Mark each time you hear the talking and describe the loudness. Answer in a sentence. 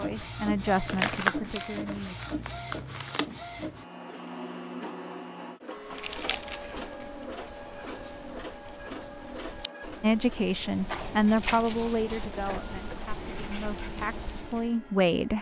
You can hear the talking briefly from 0.0 to 2.1 s; and from 10.0 to 15.3 s, getting quieter then louder.